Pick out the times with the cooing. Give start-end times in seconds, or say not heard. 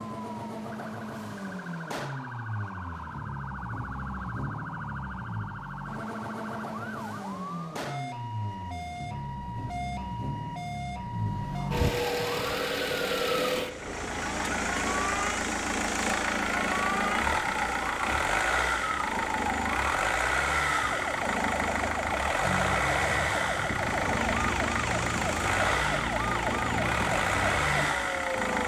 not heard.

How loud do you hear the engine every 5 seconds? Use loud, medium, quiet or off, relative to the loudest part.
medium, medium, loud, loud, loud, loud.